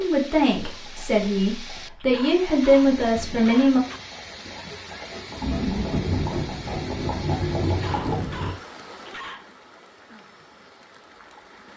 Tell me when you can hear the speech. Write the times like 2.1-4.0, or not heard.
0.0-3.8.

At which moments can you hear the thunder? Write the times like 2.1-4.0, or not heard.
5.4-8.6.